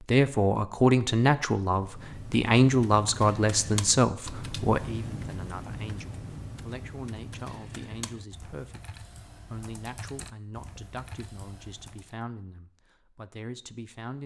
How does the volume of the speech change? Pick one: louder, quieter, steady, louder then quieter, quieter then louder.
quieter.